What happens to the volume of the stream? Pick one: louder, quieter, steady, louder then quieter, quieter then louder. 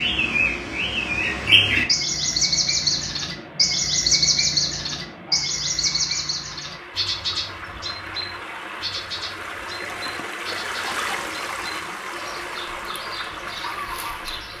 louder.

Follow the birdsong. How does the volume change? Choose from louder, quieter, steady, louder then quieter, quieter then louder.
quieter.